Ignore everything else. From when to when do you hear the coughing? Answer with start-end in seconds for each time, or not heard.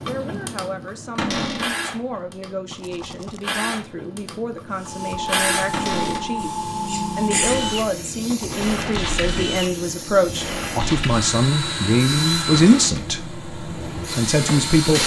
not heard.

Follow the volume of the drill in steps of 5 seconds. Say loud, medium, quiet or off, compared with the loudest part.
medium, loud, loud.